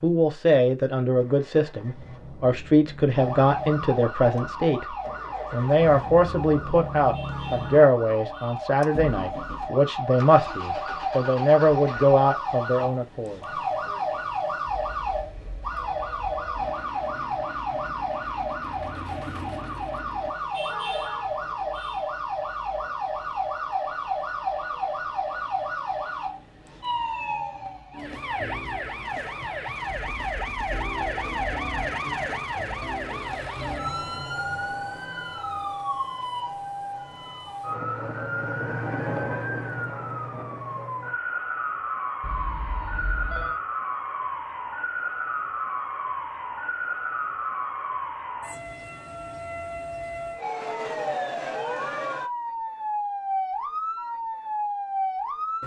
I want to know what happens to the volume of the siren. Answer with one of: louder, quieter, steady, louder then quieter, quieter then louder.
steady.